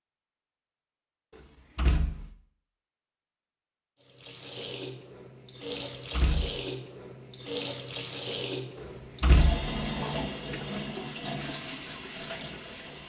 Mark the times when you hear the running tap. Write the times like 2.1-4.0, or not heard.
4.0-13.0.